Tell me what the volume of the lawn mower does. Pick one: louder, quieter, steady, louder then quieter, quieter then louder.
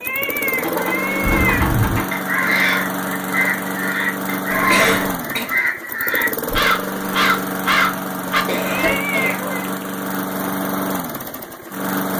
steady.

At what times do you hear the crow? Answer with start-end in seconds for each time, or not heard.
1.2-8.9.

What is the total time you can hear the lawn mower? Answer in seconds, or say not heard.
12 s.